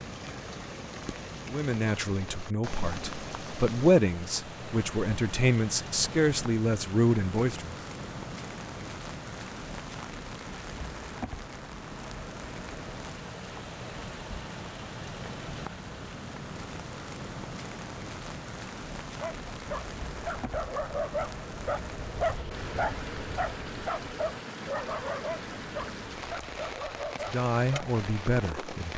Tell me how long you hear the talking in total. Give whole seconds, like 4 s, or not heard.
8 s.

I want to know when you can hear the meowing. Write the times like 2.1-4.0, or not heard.
not heard.